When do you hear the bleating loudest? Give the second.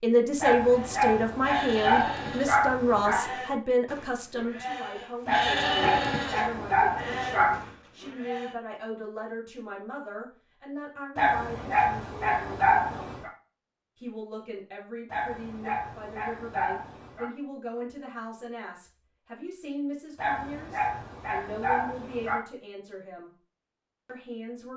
6 s.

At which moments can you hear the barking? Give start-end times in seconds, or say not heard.
0.4-3.2, 5.2-7.7, 11.2-13.3, 15.1-17.3, 20.1-22.4.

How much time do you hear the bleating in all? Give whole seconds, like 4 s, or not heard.
8 s.